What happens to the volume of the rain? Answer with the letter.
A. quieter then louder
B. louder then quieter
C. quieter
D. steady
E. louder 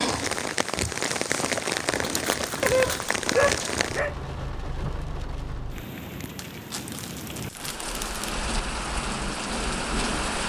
A.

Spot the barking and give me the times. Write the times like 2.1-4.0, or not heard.
2.6-4.2.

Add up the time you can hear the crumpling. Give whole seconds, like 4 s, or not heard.
3 s.